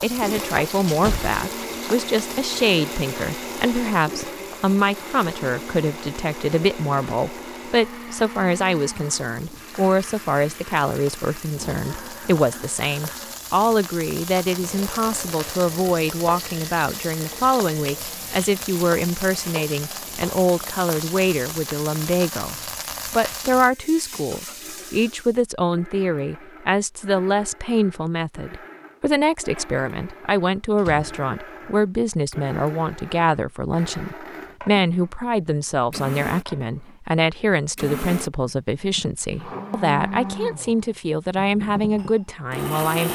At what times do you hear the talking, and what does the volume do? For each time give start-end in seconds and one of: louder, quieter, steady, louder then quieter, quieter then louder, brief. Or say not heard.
0.0-43.0 steady.